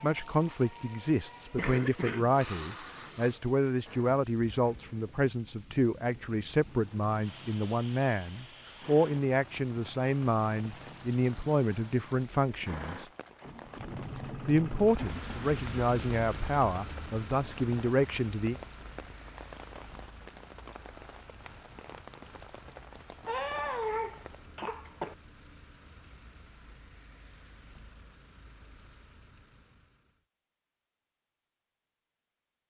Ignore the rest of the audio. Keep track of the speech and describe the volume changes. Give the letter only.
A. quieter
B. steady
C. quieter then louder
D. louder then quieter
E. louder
B.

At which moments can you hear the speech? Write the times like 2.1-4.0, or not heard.
0.0-13.1, 14.4-18.6.